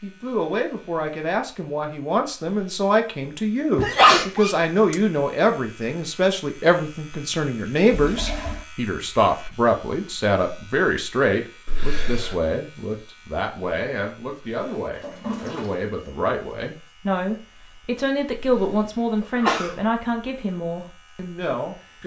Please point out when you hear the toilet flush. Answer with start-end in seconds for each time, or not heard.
7.9-8.7, 14.9-15.8.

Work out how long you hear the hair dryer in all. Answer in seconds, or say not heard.
not heard.